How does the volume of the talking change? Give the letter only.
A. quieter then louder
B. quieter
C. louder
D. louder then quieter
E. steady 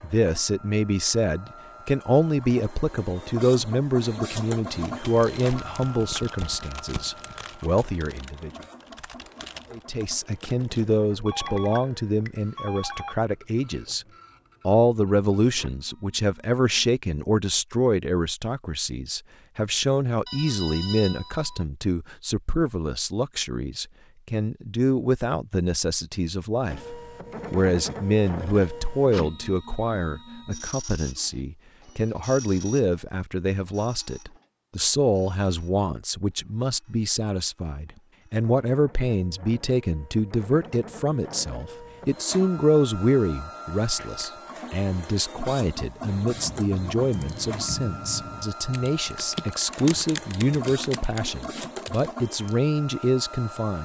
E.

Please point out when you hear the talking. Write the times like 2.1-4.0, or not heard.
0.0-8.5, 9.7-14.1, 14.7-53.7.